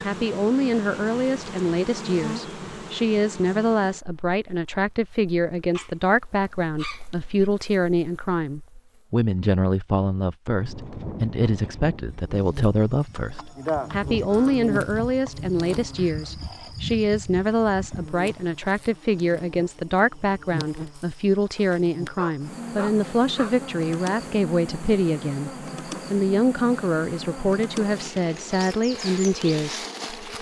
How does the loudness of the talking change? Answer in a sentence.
The loudness of the talking stays about the same.